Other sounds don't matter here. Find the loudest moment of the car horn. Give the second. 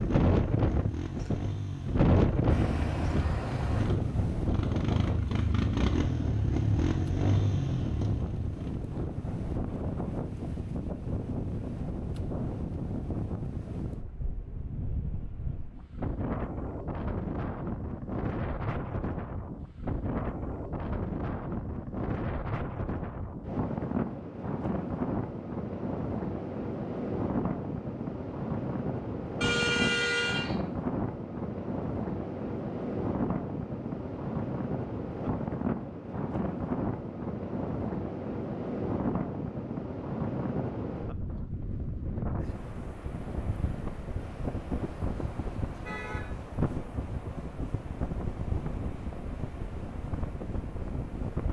30 s.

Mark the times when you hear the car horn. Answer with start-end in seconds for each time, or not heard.
2.5-3.9, 29.4-30.6, 44.1-46.2.